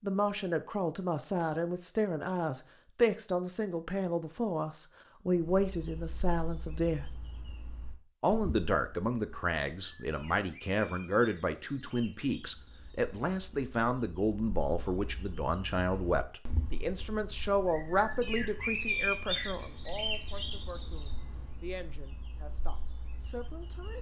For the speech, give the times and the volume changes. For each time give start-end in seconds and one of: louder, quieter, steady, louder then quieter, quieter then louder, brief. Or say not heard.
0.0-7.0 steady
8.2-23.9 quieter.